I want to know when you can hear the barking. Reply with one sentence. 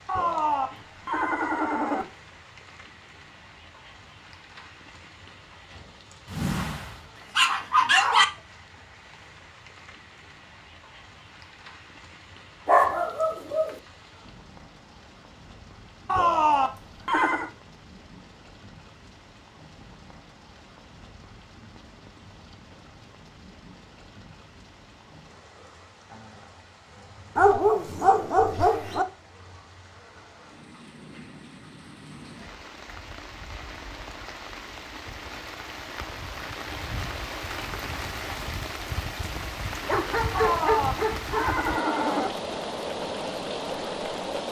The barking can be heard from 6.3 to 8.2 s, from 12.7 to 13.8 s, from 27.4 to 29.1 s and from 39.9 to 41.5 s.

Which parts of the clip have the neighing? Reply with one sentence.
You can hear the neighing from 0.1 to 2.0 s, from 16.1 to 17.5 s and from 40.3 to 42.3 s.